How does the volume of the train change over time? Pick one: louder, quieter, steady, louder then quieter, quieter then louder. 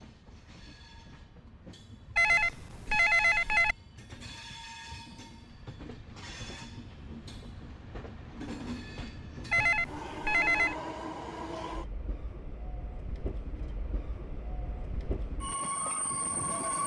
louder.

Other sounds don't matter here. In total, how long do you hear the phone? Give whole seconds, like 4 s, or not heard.
3 s.